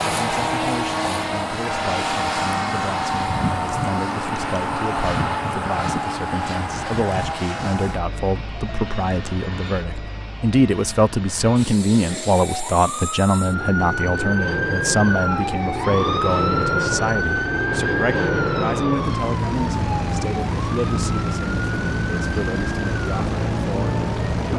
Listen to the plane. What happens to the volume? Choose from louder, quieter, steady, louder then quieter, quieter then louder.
quieter then louder.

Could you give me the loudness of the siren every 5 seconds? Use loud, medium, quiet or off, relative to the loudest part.
off, off, loud, loud, medium.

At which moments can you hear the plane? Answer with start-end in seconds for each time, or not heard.
0.0-24.5.